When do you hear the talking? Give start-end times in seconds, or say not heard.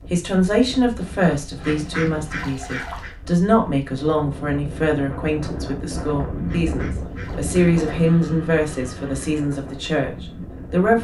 0.1-10.9.